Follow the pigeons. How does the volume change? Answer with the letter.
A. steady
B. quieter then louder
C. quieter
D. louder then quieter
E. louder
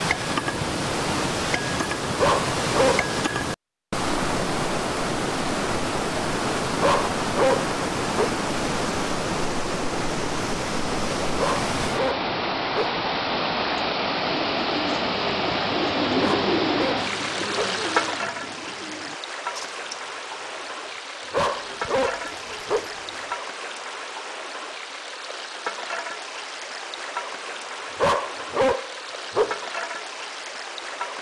C.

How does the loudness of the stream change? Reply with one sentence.
The loudness of the stream goes down.